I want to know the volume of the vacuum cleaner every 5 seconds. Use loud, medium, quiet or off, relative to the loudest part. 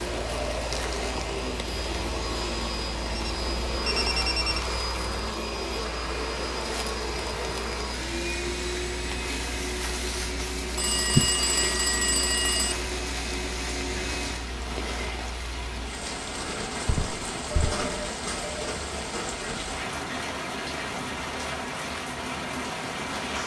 loud, loud, loud, off, off.